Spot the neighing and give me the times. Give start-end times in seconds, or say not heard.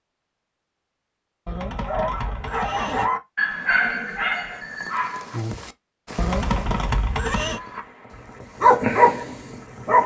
1.4-3.1, 6.2-7.6.